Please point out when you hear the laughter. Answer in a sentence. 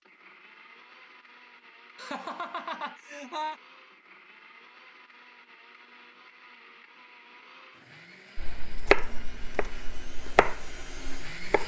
The laughter can be heard from 1.9 to 3.6 s.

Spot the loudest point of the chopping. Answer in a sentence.
The volume of the chopping peaks at 9 seconds.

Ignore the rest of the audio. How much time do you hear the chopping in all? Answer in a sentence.
The chopping can be heard for 3 seconds in total.